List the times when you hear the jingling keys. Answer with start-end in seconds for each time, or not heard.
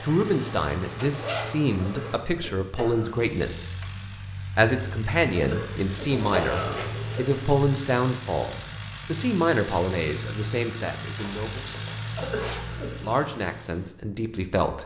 not heard.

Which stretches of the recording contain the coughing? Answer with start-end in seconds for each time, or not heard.
1.8-3.1, 5.3-7.2, 12.2-13.0.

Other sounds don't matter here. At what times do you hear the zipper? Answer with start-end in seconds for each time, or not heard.
0.9-1.6, 6.0-7.5, 11.2-12.7.